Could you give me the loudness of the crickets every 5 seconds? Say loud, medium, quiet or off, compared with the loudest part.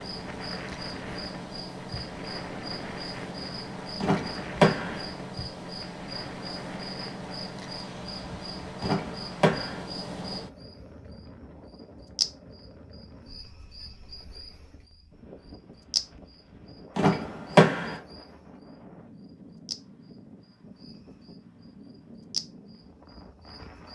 loud, loud, loud, loud, medium.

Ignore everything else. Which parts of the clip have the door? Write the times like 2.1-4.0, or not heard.
4.0-5.0, 8.8-9.8, 16.9-18.0.